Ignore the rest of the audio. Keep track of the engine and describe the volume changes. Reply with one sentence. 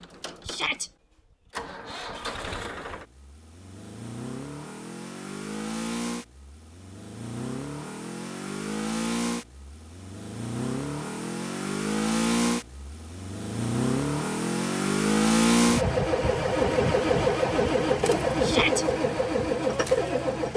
The loudness of the engine goes up.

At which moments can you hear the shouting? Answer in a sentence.
You can hear the shouting from 0.5 to 0.9 s and from 18.4 to 18.9 s.